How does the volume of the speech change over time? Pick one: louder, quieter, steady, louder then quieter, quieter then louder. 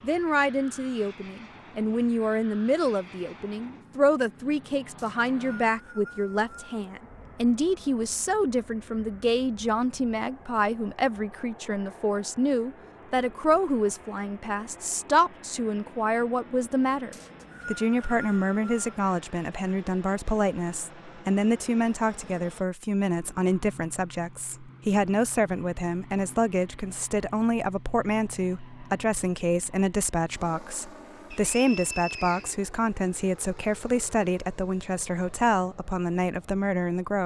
steady.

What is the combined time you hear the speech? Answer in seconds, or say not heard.
37 s.